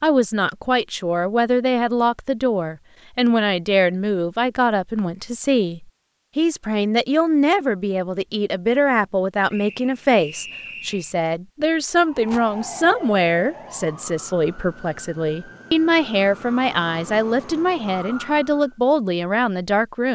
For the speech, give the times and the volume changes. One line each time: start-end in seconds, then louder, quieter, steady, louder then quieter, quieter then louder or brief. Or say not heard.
0.0-20.0 steady.